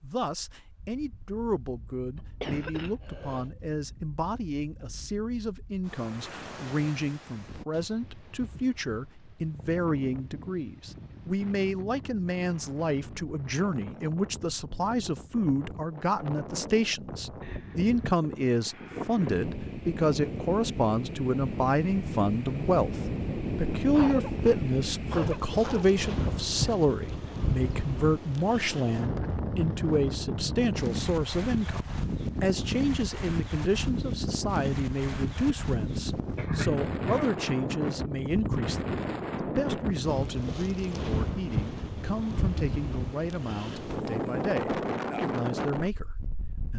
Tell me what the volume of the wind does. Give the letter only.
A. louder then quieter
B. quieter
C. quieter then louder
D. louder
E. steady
D.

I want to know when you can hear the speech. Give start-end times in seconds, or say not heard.
0.0-46.7.